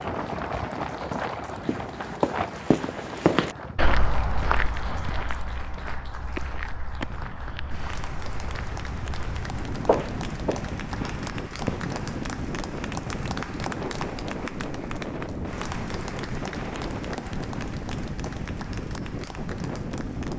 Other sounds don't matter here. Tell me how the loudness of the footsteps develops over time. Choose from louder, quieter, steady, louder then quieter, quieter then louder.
quieter then louder.